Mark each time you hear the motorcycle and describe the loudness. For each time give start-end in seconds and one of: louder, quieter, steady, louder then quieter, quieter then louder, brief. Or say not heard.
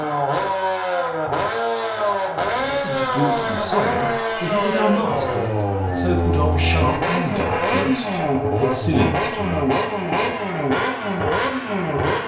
0.0-12.2 steady.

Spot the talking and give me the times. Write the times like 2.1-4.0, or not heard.
2.8-9.7.